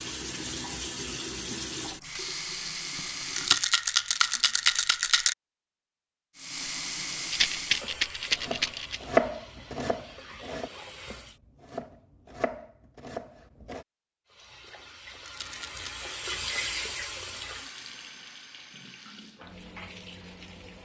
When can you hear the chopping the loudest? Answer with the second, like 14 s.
9 s.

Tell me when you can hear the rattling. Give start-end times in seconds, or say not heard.
3.4-5.3, 7.3-9.0, 15.2-16.0.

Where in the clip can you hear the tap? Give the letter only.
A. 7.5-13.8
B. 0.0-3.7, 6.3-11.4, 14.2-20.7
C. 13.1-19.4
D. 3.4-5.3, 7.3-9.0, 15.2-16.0
B.